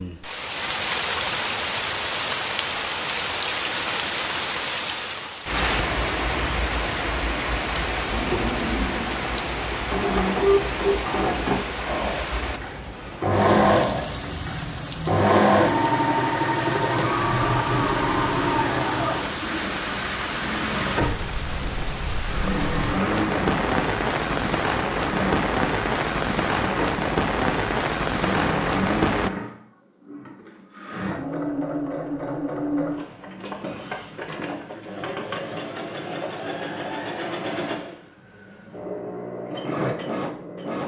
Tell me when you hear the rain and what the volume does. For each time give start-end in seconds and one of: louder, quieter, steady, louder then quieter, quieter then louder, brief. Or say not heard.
0.0-29.3 quieter then louder.